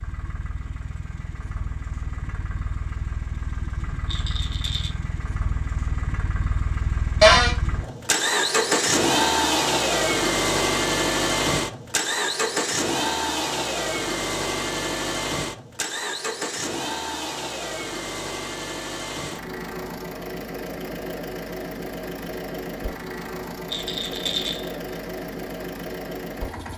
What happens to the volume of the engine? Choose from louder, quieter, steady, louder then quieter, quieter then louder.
louder then quieter.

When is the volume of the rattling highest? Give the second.
24 s.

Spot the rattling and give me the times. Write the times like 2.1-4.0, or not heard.
4.0-4.9, 23.7-24.8.